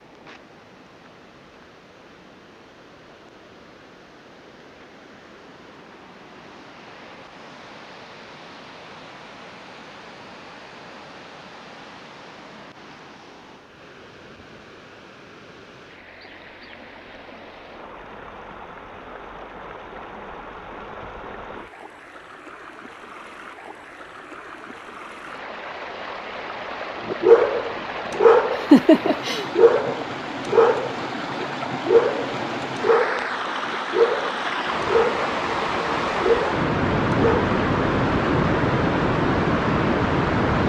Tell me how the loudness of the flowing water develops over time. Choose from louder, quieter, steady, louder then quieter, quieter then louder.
louder.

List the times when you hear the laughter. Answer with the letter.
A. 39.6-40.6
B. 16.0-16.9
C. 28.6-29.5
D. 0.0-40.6
C.